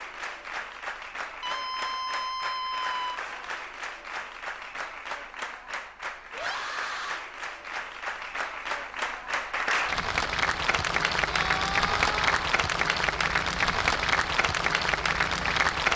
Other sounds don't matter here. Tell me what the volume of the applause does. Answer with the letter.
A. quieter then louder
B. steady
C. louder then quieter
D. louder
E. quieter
D.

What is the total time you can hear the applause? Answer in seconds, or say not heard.
16 s.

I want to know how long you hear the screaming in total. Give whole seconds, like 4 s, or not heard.
4 s.